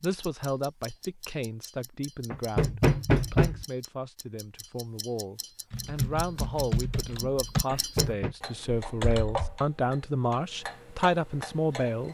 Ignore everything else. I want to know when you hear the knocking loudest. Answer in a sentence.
The volume of the knocking peaks at 3 seconds.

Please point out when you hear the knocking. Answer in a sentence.
You can hear the knocking from 2.3 to 3.6 s and from 7.8 to 8.3 s.